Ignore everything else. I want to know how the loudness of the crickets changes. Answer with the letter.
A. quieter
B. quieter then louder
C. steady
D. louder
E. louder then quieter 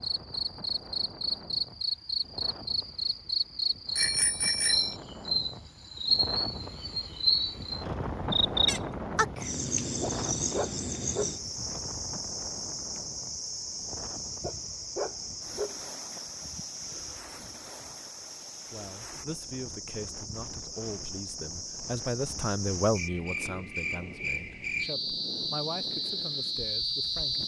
B.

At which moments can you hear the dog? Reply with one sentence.
The dog can be heard from 10.0 to 11.8 s and from 14.4 to 16.2 s.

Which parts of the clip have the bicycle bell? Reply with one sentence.
You can hear the bicycle bell from 4.0 to 5.0 s.